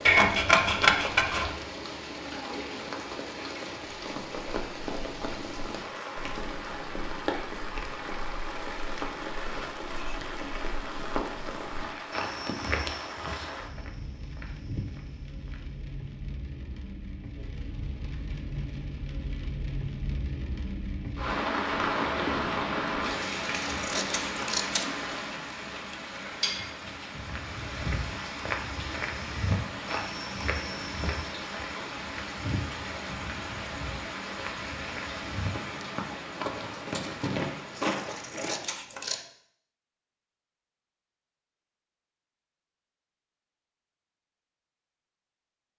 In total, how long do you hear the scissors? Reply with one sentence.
You can hear the scissors for 4 seconds altogether.